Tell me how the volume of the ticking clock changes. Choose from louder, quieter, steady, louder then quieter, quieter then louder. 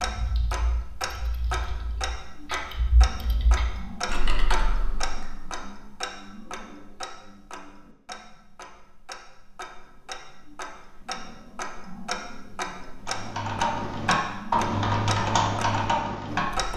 quieter then louder.